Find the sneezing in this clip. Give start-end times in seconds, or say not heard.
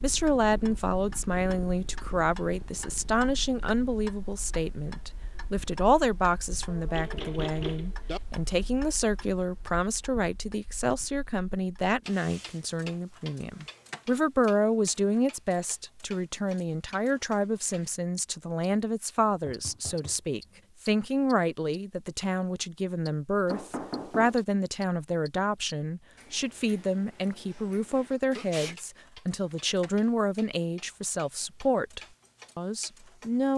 28.1-28.8.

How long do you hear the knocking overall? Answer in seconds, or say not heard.
4 s.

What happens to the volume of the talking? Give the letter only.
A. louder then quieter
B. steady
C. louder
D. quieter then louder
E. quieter
B.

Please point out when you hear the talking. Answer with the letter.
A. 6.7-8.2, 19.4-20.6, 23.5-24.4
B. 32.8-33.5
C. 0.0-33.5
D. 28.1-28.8
C.